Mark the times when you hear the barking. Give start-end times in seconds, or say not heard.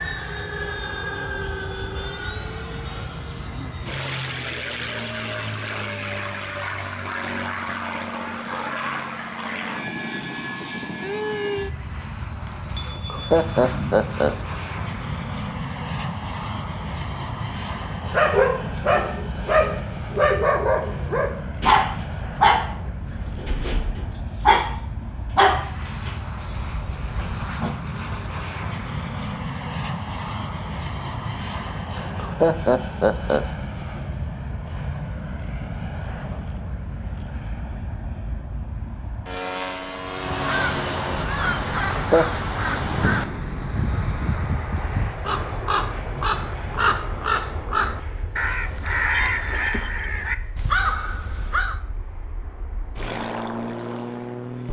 18.1-27.7.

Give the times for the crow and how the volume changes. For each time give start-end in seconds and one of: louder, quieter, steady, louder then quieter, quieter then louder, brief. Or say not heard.
40.1-51.8 steady.